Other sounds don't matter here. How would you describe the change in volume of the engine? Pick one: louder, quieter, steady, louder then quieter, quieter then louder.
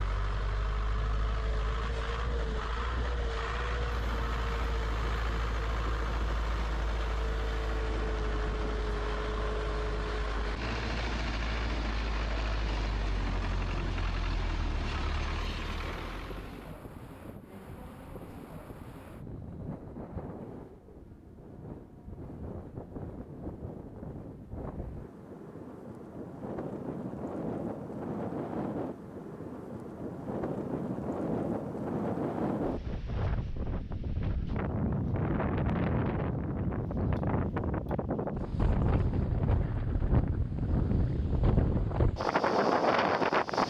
steady.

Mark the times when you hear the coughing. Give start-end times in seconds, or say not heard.
not heard.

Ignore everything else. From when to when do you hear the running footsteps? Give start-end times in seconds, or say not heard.
not heard.